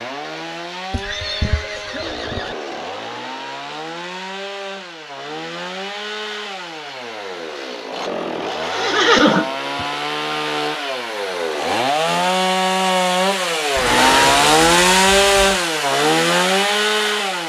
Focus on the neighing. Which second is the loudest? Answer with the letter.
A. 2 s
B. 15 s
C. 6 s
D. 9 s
D.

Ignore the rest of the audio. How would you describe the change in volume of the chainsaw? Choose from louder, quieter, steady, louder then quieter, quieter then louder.
louder.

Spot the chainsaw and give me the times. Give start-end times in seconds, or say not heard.
0.0-17.4.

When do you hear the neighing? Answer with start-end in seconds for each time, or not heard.
0.9-2.5, 8.0-9.8, 13.8-15.7.